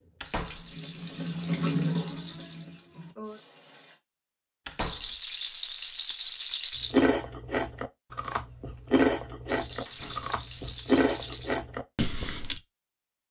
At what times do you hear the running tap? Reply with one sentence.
The running tap can be heard from 0.0 to 4.0 s.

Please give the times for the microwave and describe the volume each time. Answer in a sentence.
The microwave can't be heard in this clip.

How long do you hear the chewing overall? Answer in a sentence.
The chewing can be heard for 6 seconds in total.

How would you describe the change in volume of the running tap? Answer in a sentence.
The loudness of the running tap goes up, then down.